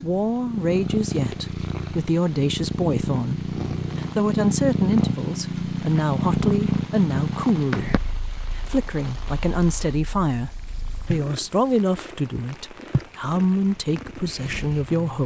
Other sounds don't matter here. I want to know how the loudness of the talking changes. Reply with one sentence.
The loudness of the talking stays about the same.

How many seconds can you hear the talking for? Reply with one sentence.
You can hear the talking for 15 seconds altogether.